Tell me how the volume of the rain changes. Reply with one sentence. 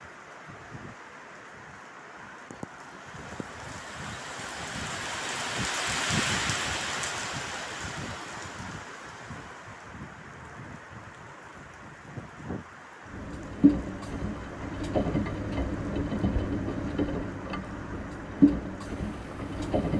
The loudness of the rain goes up, then down.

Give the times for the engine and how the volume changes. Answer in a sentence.
The engine can be heard from 13.1 to 19.9 s, getting quieter then louder.